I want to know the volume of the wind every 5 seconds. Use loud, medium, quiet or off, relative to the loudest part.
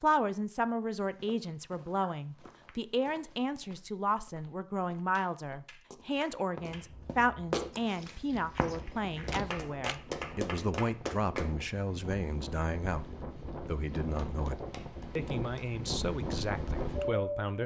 off, quiet, medium, loud.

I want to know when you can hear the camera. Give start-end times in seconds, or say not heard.
9.3-10.0.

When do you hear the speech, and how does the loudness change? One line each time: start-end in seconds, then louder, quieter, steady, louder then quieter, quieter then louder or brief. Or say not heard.
0.0-17.6 steady.